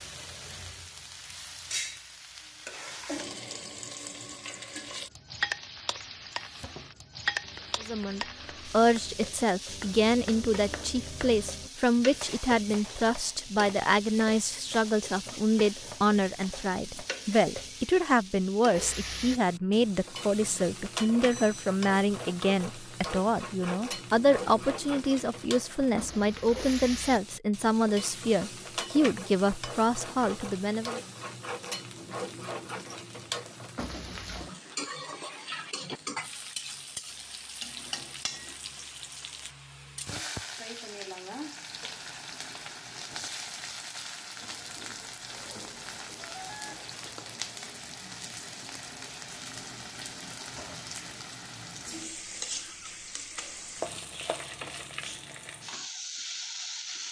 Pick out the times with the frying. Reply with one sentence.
You can hear the frying from 0.0 to 57.0 s.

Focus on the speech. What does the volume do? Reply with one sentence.
The volume of the speech stays about the same.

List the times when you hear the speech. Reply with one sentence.
You can hear the speech from 7.8 to 31.0 s.